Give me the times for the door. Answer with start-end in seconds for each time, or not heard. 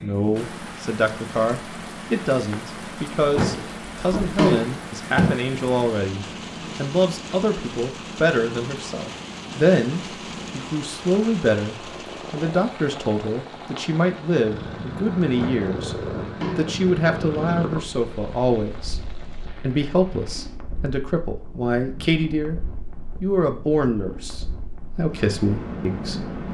3.4-5.3, 15.3-16.7.